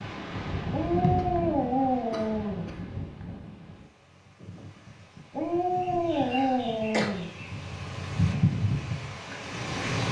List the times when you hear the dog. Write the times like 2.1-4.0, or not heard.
0.7-2.6, 5.3-7.3.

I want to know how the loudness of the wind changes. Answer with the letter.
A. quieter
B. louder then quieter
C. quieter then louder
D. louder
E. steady
C.